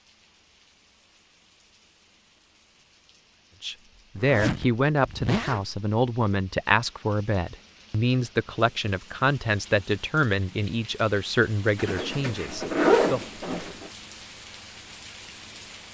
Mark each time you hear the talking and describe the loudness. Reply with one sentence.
The talking can be heard from 3.6 to 13.2 s, at a steady volume.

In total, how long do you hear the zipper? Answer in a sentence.
You can hear the zipper for 4 seconds altogether.